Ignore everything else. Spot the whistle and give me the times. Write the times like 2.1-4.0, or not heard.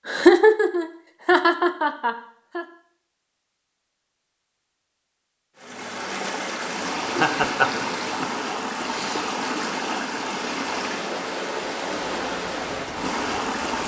not heard.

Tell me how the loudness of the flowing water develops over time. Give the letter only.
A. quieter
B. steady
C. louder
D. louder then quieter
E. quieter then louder
B.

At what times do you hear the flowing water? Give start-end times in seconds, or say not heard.
5.5-13.8.